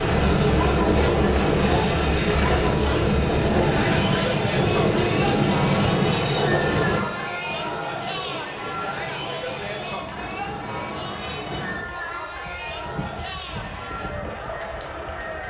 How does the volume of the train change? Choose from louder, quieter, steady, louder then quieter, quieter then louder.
quieter.